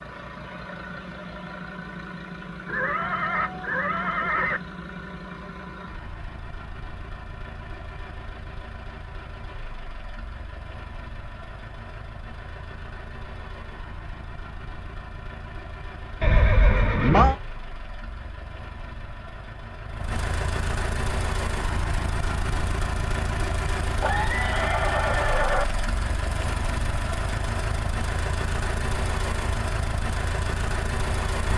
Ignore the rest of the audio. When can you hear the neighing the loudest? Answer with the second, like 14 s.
17 s.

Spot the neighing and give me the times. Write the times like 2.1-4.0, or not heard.
2.6-4.6, 16.2-17.4, 24.0-25.6.